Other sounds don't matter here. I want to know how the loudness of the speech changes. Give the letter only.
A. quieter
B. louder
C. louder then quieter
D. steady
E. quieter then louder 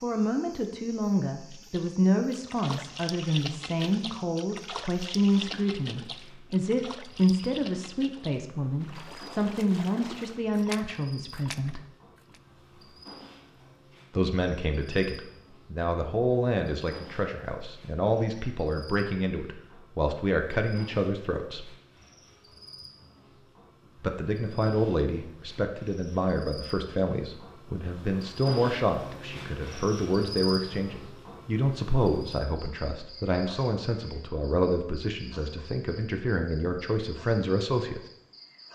D.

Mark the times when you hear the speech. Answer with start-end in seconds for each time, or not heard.
0.0-11.8, 14.1-21.7, 24.0-38.0.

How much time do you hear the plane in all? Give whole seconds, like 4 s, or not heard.
not heard.